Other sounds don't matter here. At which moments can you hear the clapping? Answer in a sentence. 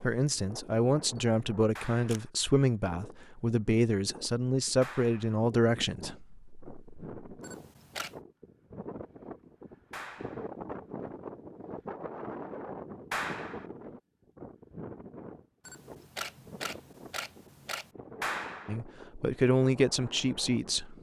You can hear the clapping from 1.8 to 2.3 s, from 4.8 to 5.3 s, from 9.9 to 10.5 s, from 13.1 to 13.7 s and from 18.2 to 18.8 s.